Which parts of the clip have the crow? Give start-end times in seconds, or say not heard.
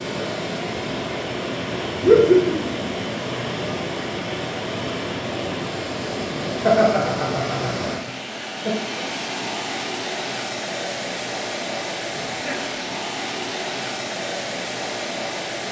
not heard.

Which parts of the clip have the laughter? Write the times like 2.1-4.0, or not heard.
2.0-2.9, 6.5-8.7, 12.2-12.8.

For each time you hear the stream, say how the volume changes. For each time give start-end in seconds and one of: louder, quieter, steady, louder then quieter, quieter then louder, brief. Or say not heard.
0.0-15.6 steady.